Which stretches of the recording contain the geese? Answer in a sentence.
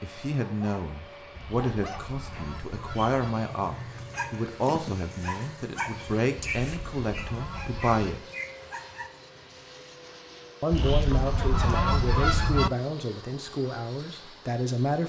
You can hear the geese from 1.3 to 3.4 s, from 6.3 to 8.0 s and from 10.7 to 12.7 s.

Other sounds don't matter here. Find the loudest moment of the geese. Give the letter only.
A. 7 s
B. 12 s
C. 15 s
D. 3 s
B.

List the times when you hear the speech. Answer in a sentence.
The speech can be heard from 0.0 to 8.3 s and from 10.6 to 15.0 s.